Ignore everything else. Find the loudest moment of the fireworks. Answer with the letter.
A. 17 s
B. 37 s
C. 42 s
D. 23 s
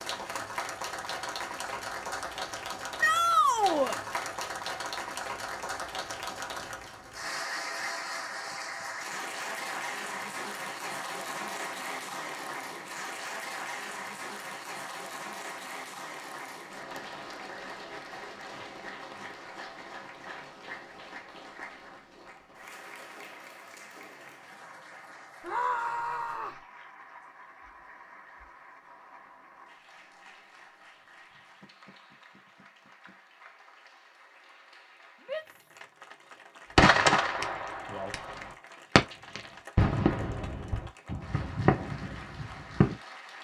B.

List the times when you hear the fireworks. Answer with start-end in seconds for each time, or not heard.
36.8-43.0.